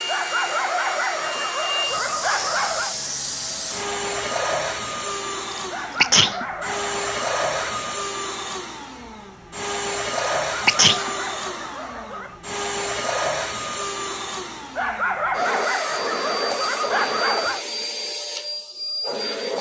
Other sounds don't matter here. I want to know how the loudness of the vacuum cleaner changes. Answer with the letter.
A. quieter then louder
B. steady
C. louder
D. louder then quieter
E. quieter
B.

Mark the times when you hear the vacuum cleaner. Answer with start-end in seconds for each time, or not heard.
0.0-19.5.